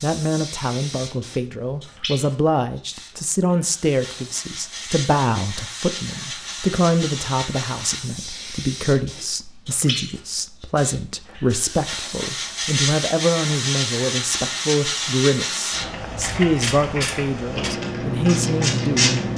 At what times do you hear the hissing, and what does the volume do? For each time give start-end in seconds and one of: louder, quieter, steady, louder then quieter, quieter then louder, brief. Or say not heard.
0.0-19.3 louder.